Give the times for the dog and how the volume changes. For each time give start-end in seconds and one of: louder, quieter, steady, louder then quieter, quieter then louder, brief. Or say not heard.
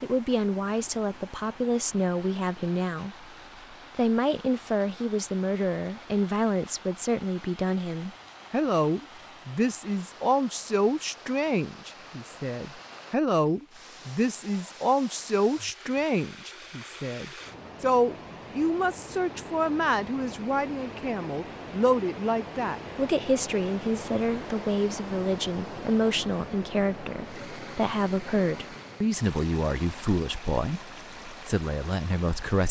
not heard.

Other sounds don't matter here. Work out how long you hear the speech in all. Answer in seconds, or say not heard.
32 s.